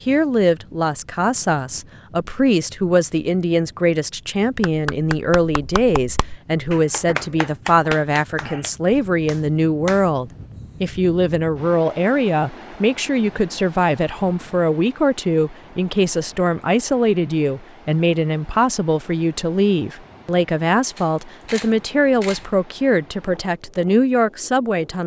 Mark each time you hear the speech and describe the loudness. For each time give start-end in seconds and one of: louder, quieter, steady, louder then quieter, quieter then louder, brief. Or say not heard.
0.1-25.0 steady.